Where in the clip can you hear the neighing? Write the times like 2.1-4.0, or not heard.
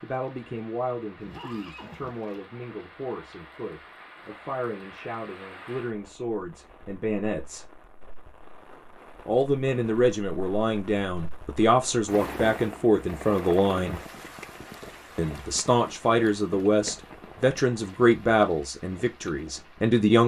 1.2-2.4.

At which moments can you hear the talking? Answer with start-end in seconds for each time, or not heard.
0.0-7.7, 9.2-14.0, 15.2-20.2.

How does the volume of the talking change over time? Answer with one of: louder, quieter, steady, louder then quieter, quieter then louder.
louder.